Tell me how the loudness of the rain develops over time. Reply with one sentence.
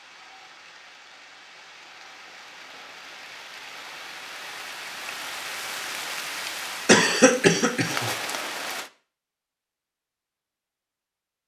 The loudness of the rain goes up.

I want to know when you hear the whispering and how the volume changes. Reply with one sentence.
You can't hear the whispering here.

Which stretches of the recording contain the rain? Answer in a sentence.
The rain can be heard from 0.0 to 8.9 s.